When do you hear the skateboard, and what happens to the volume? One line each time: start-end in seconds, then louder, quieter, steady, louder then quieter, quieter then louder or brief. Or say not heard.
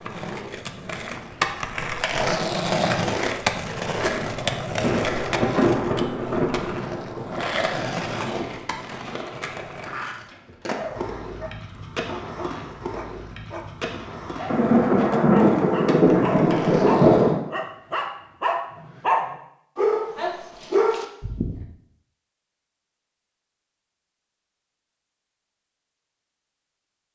0.0-17.4 quieter.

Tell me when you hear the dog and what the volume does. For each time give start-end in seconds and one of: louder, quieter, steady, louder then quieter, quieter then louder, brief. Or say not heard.
10.8-13.7 brief
14.3-21.6 louder.